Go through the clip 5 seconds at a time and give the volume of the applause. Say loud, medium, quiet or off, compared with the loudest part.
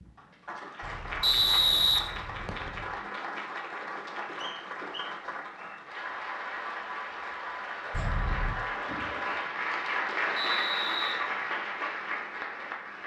medium, loud, loud.